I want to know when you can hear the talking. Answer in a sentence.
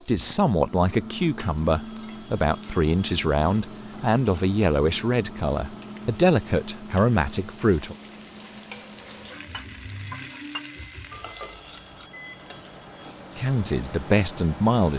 The talking can be heard from 0.1 to 8.0 s and from 13.3 to 14.9 s.